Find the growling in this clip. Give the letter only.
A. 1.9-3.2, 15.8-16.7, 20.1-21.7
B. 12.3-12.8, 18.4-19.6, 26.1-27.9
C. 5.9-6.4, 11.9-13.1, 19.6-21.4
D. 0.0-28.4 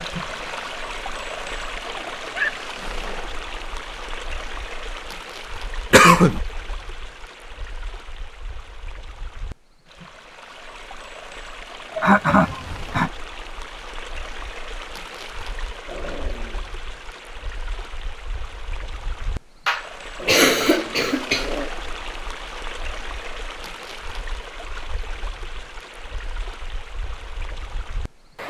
A.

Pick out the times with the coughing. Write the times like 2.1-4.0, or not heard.
5.9-6.4, 11.9-13.1, 19.6-21.4.